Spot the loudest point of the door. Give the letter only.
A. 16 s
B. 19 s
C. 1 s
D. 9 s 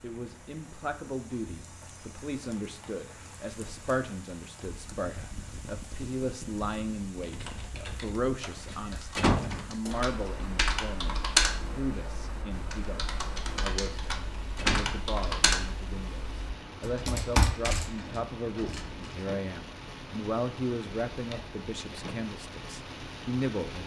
D.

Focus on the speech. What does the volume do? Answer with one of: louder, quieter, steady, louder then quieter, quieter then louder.
steady.